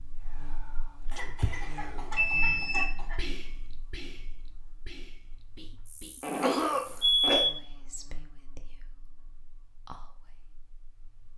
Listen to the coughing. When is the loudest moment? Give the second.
7 s.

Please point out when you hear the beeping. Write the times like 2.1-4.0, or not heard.
2.1-3.0, 6.8-7.5.